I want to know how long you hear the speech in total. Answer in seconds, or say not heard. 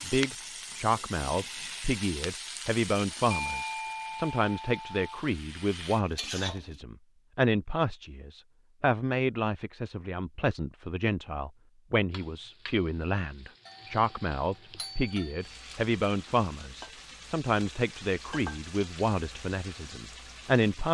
21 s.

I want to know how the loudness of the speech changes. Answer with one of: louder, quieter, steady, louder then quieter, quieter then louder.
steady.